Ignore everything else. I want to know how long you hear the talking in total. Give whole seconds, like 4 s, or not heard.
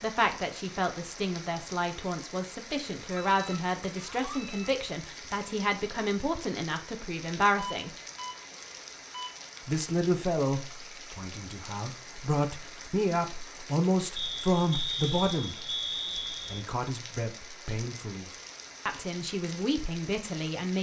18 s.